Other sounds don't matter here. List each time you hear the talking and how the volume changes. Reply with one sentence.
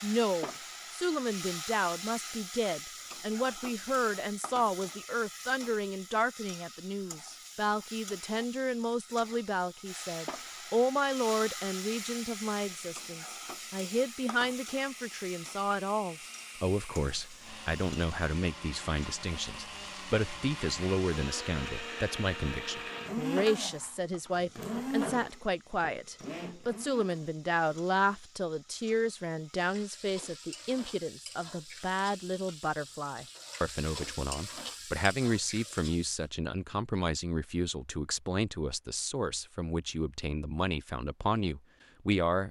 You can hear the talking from 0.0 to 42.4 s, at a steady volume.